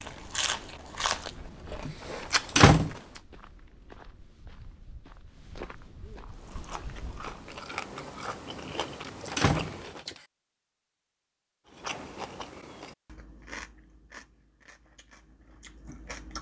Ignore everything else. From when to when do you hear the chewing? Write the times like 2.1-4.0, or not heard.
0.0-3.2, 6.3-10.1, 11.7-16.3.